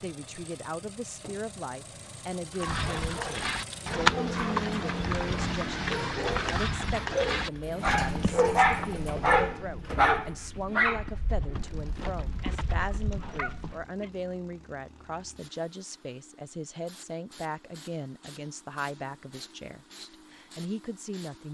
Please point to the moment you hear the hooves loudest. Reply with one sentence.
The volume of the hooves peaks at 4 seconds.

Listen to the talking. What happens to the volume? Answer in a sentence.
The volume of the talking stays about the same.